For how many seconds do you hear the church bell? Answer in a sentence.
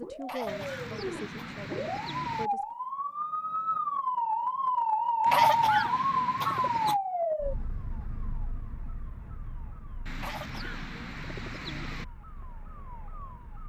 The church bell can't be heard in this clip.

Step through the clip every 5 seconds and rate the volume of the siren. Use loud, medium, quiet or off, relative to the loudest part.
loud, loud, quiet.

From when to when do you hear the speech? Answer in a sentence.
The speech can be heard from 0.0 to 2.6 s.